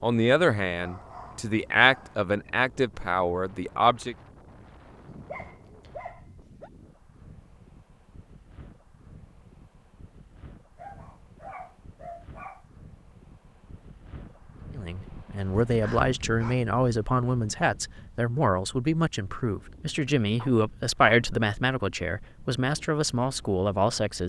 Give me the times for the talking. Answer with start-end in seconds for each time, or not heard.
0.0-4.2, 14.8-24.2.